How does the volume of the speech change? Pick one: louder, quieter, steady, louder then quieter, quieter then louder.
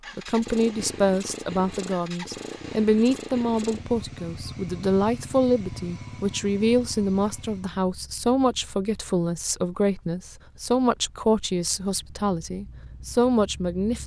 steady.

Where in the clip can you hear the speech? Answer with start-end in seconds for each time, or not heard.
0.1-14.0.